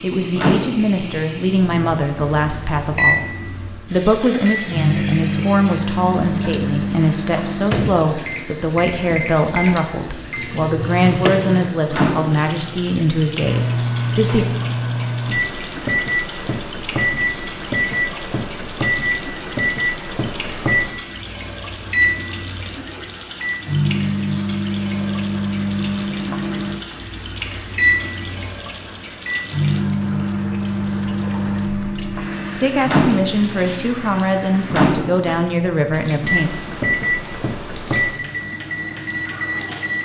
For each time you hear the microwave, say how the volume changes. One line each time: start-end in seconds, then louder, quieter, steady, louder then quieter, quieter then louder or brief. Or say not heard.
0.0-40.0 steady.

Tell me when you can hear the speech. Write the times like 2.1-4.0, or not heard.
0.0-14.4, 32.5-36.5.